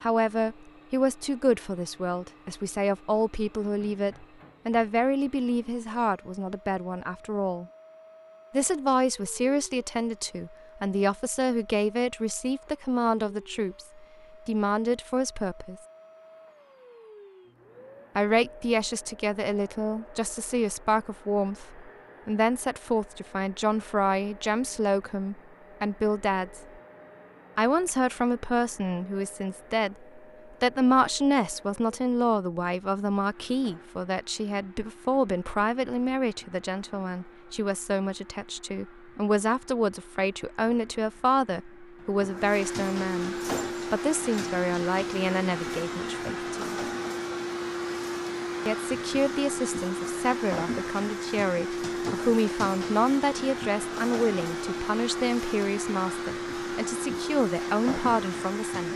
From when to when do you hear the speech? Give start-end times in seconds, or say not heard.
0.0-7.7, 8.5-15.8, 18.1-26.6, 27.6-46.5, 48.6-58.9.